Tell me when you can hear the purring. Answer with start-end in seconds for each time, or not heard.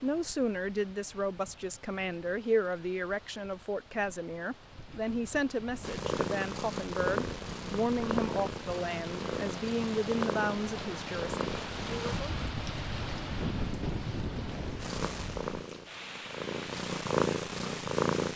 5.8-12.2, 14.8-18.3.